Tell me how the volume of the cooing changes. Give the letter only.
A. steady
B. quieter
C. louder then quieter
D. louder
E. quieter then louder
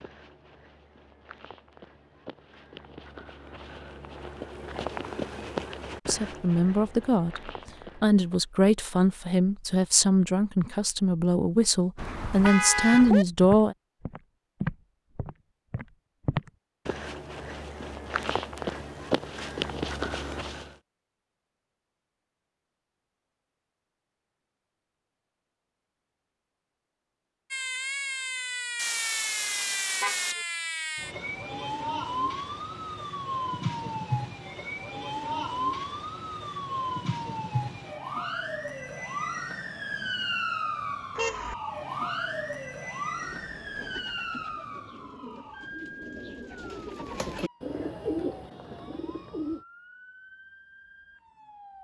D.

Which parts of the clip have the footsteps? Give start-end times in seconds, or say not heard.
0.0-8.4, 12.4-20.8.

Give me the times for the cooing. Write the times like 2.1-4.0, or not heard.
43.1-49.6.